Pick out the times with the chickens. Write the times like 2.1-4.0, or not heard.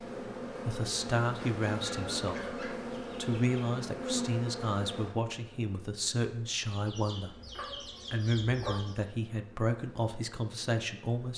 1.6-3.5, 6.7-8.9.